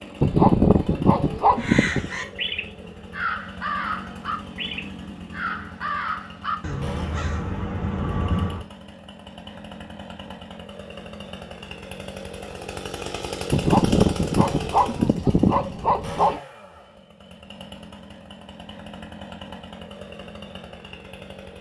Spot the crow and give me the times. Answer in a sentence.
You can hear the crow from 1.6 to 8.7 s.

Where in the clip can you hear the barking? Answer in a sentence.
The barking can be heard from 0.2 to 2.1 s and from 13.5 to 16.4 s.